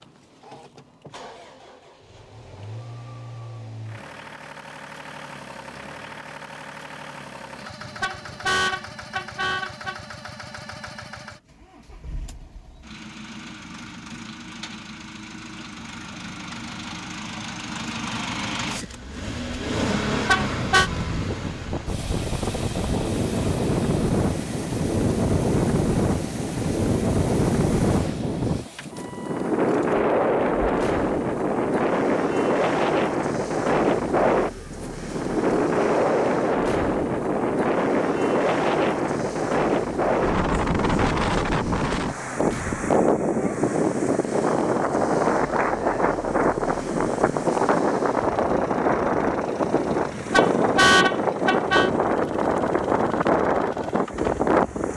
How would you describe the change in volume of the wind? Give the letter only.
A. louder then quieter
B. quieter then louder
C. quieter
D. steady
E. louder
D.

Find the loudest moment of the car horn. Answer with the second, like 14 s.
51 s.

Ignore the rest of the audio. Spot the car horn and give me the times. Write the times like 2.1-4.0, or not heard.
7.8-9.9, 20.1-20.9, 50.1-51.9.